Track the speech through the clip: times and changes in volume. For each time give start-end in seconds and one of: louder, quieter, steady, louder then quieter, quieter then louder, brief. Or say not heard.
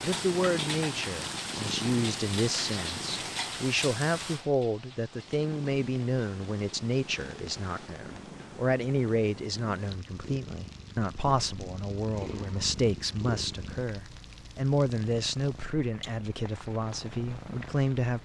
0.0-18.1 steady.